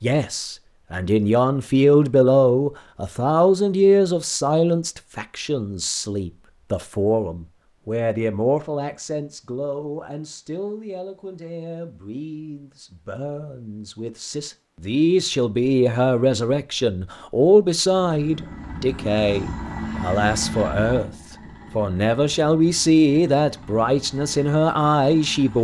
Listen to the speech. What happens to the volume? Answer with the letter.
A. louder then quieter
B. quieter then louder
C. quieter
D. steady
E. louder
B.